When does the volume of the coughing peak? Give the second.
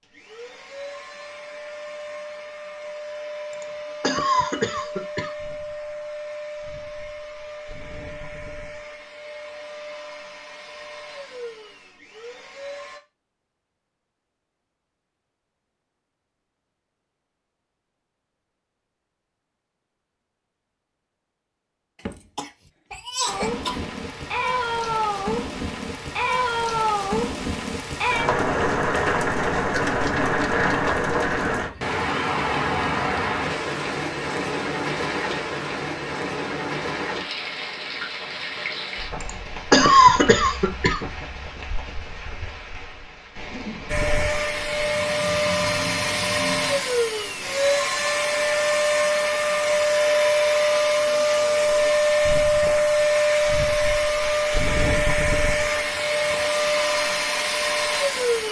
40 s.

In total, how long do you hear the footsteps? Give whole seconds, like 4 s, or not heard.
not heard.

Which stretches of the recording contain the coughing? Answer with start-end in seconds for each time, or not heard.
3.5-5.3, 22.1-23.9, 39.2-41.0.